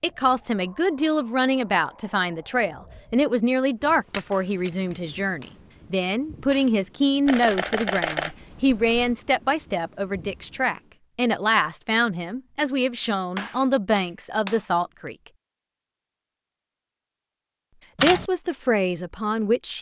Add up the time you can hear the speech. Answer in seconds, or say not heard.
17 s.